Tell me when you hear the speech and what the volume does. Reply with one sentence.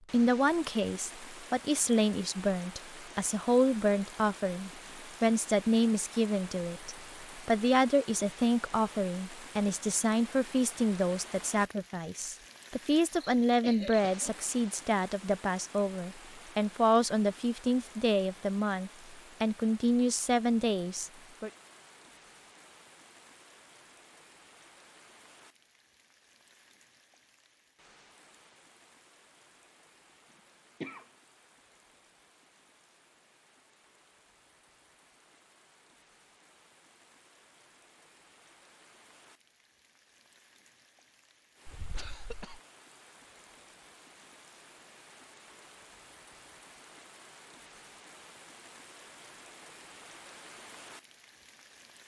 The speech can be heard from 0.1 to 21.5 s, at a steady volume.